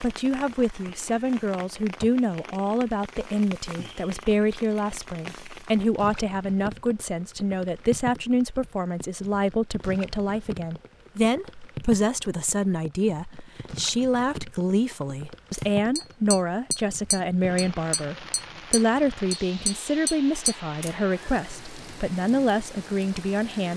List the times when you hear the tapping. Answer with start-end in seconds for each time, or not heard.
15.5-20.9.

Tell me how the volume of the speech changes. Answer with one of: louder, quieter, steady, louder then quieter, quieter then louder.
steady.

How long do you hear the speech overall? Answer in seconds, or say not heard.
24 s.